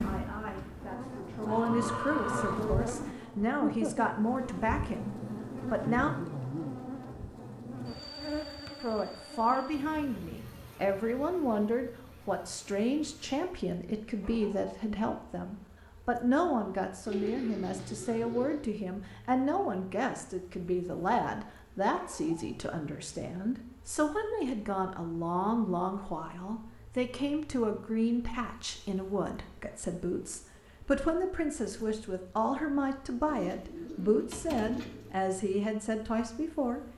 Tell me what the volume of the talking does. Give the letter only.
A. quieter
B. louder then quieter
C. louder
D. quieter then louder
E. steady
E.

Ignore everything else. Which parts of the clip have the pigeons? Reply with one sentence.
The pigeons can be heard from 1.4 to 3.2 s, from 17.1 to 18.6 s and from 33.2 to 35.1 s.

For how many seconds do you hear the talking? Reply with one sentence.
The talking can be heard for 34 seconds in total.